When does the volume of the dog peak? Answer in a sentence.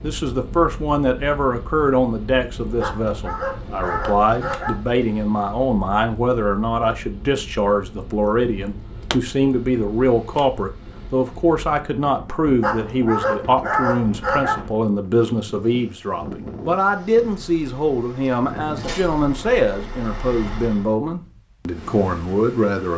The volume of the dog peaks at 14 seconds.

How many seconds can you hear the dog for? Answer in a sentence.
You can hear the dog for 4 seconds altogether.